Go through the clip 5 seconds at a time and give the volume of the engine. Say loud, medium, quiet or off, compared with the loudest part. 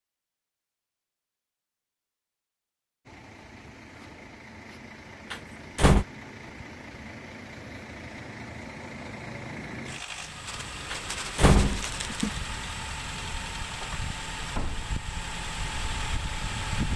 quiet, medium, loud, loud.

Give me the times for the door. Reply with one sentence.
You can hear the door from 5.3 to 6.0 s and from 10.9 to 12.3 s.